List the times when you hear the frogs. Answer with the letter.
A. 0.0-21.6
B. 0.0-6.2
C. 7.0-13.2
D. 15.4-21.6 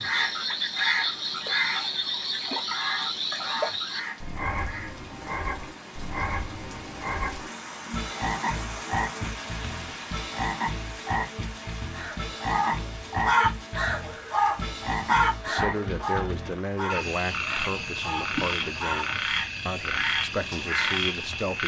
A.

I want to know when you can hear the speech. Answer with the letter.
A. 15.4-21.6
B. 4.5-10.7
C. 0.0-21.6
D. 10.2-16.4
A.